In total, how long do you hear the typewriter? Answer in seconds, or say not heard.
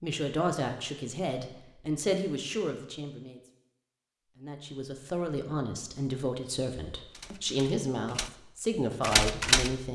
2 s.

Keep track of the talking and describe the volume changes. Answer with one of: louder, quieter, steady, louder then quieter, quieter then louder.
steady.